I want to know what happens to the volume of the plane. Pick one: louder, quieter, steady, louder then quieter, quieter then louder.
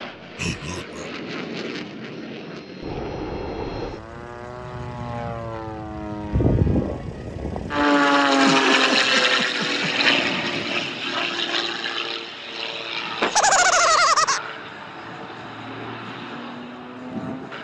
louder then quieter.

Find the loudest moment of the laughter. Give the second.
14 s.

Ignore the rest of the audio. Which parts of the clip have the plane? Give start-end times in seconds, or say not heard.
0.0-17.5.